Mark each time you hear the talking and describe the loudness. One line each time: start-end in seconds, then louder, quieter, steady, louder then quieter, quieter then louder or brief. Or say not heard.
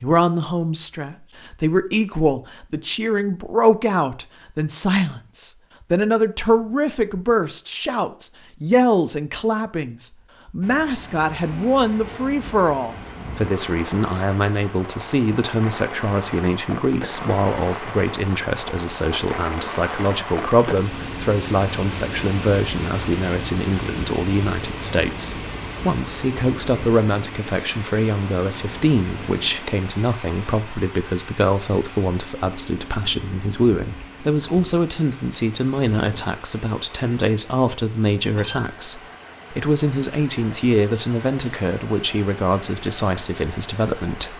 0.0-44.3 steady.